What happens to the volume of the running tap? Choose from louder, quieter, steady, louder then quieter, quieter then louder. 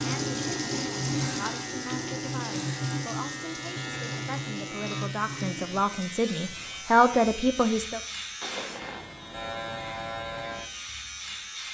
quieter.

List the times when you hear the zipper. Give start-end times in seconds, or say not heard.
8.4-9.1.